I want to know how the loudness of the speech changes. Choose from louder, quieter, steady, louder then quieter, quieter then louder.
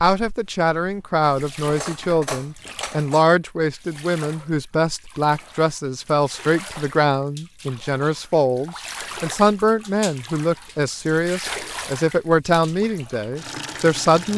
steady.